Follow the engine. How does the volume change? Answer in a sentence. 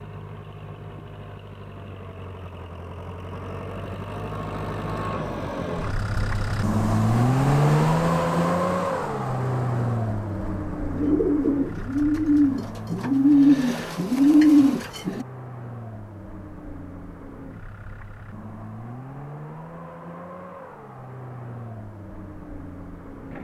The loudness of the engine goes up, then down.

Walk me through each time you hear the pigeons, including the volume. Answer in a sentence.
You can hear the pigeons from 10.9 to 15.2 s, getting louder.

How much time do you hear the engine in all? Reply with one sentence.
You can hear the engine for 23 seconds altogether.